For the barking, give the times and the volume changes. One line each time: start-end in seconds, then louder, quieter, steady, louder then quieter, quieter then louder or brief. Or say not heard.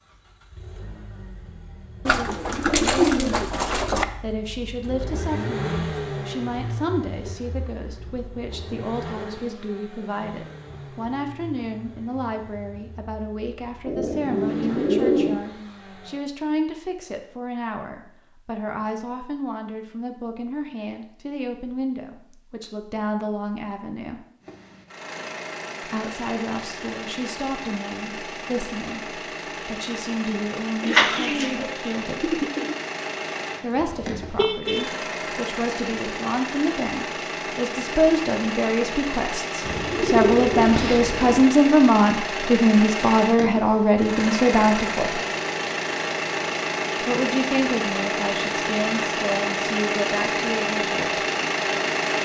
not heard.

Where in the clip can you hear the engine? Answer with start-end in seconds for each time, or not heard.
0.0-16.2, 24.4-52.2.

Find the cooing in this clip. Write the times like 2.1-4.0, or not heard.
2.0-4.0, 13.8-15.4, 30.8-32.8, 39.6-41.5.